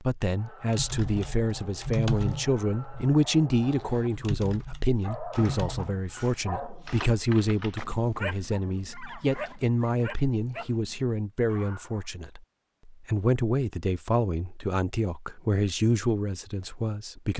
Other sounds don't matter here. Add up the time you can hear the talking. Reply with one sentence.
You can hear the talking for 17 seconds altogether.